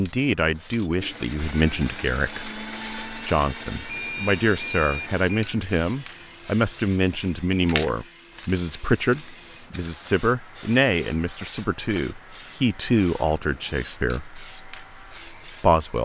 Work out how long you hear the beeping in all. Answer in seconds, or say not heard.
2 s.